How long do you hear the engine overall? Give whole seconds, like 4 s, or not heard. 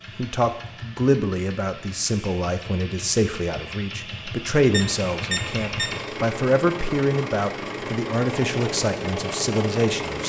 10 s.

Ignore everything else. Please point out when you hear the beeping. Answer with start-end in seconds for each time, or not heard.
4.7-6.0.